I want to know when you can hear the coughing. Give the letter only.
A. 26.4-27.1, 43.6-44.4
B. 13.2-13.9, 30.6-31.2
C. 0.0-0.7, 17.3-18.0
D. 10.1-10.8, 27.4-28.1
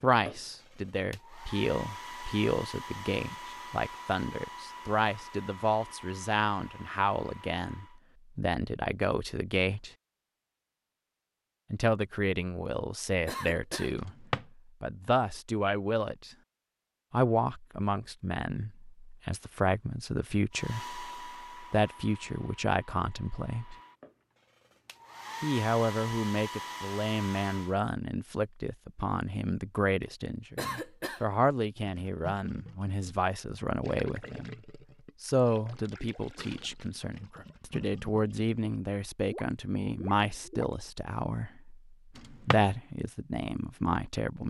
B.